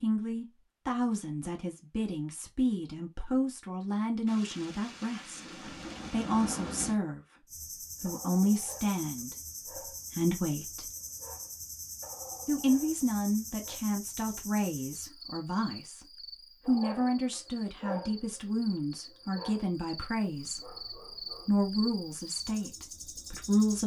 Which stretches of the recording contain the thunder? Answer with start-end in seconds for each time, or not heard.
4.2-7.0.